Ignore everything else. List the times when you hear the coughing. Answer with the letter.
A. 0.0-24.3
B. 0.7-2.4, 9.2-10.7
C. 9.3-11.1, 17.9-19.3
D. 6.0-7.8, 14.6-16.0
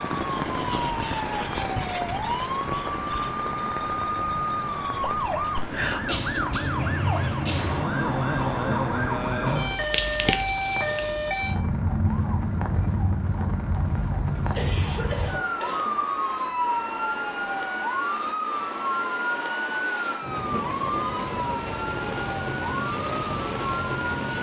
D.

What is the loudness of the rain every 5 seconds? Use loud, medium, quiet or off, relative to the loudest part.
loud, medium, medium, medium, loud.